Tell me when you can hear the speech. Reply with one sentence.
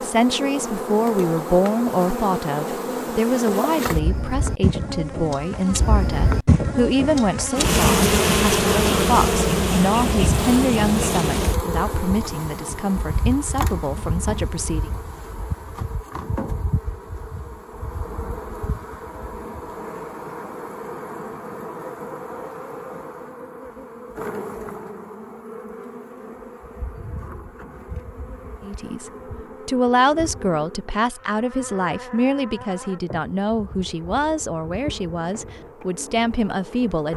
You can hear the speech from 0.0 to 14.9 s and from 28.6 to 37.1 s.